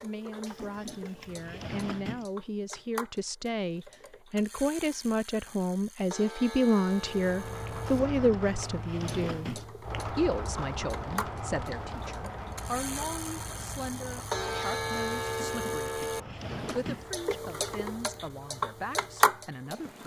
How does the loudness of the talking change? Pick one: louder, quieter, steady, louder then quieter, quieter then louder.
louder then quieter.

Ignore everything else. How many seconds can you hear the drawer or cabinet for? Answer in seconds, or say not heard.
5 s.